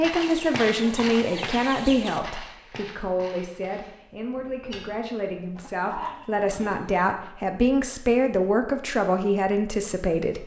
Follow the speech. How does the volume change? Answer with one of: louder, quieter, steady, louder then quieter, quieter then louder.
quieter then louder.